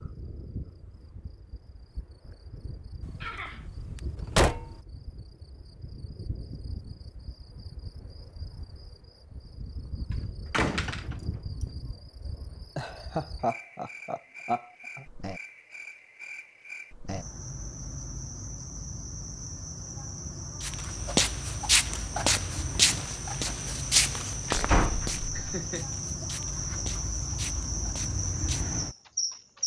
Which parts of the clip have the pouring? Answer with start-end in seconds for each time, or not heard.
not heard.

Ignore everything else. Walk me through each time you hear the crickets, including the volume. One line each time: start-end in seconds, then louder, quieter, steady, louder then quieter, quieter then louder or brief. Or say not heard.
0.0-29.6 louder.